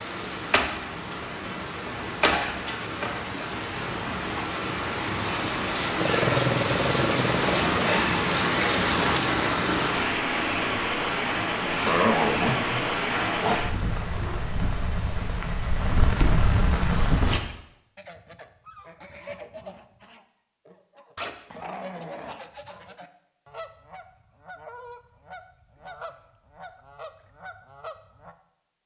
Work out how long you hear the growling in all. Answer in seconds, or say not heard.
5 s.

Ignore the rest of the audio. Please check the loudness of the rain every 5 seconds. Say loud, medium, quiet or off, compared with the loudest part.
medium, loud, loud, loud, off, off.